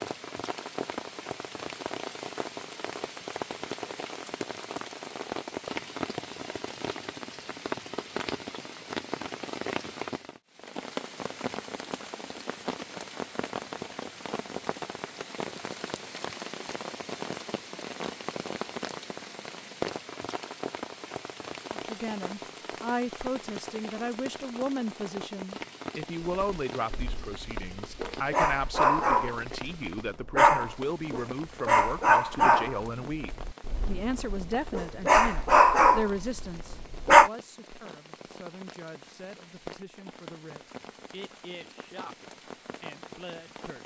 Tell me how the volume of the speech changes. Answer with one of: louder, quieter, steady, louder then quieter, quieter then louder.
quieter.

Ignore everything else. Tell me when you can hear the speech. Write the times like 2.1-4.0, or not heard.
21.7-43.8.